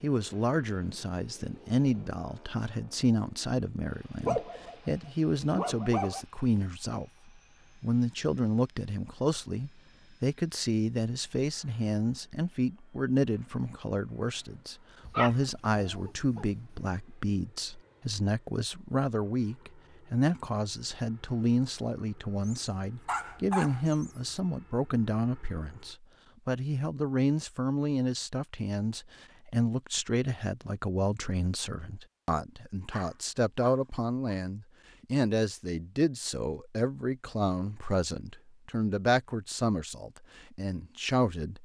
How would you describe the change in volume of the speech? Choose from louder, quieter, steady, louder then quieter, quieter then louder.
steady.